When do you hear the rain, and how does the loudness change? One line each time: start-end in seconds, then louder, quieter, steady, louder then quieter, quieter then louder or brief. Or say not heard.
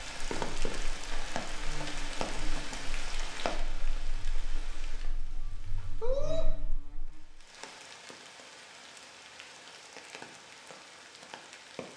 0.0-6.5 quieter
7.3-11.9 steady.